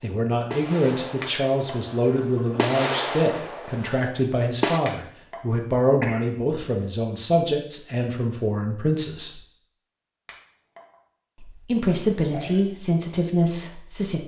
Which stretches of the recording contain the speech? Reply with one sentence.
You can hear the speech from 0.0 to 9.4 s and from 11.4 to 14.2 s.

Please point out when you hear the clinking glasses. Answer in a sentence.
You can hear the clinking glasses from 1.2 to 1.8 s, from 4.8 to 5.3 s and from 10.2 to 10.8 s.